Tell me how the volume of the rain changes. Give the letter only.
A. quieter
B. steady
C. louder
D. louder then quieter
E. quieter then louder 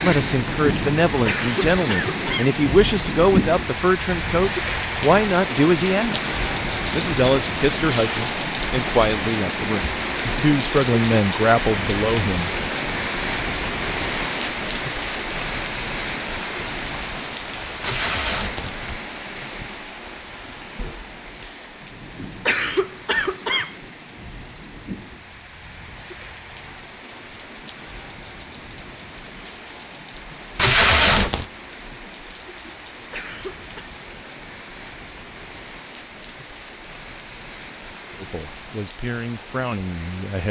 A.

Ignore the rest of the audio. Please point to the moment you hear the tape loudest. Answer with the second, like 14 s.
31 s.